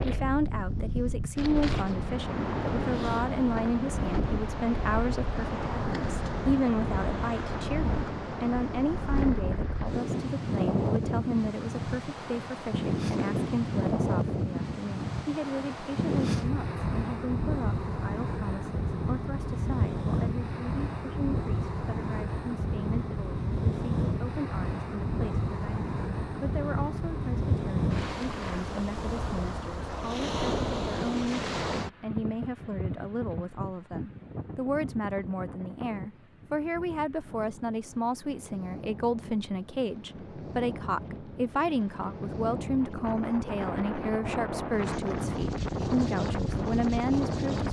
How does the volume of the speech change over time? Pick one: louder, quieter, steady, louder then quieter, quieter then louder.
quieter then louder.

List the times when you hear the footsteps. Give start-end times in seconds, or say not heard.
not heard.